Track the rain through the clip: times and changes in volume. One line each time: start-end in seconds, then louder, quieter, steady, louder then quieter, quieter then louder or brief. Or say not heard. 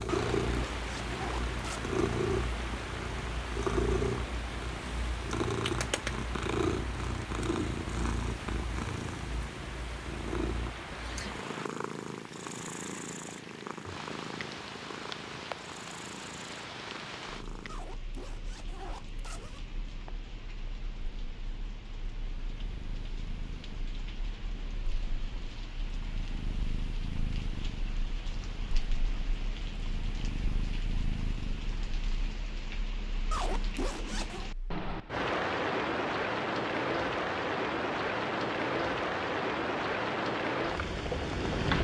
0.1-41.7 quieter then louder.